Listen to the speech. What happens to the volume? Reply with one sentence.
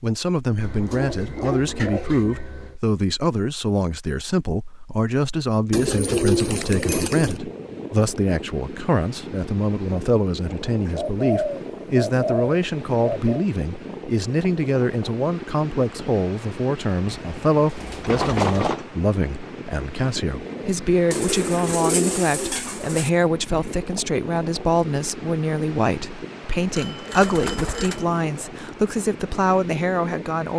The volume of the speech stays about the same.